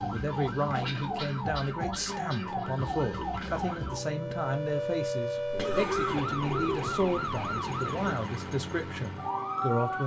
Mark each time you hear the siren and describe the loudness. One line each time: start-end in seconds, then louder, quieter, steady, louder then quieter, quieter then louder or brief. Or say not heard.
0.0-10.0 steady.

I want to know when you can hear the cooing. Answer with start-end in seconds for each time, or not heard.
5.5-8.2.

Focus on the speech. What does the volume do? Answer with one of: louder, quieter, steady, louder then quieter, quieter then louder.
steady.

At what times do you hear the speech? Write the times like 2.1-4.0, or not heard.
0.0-10.0.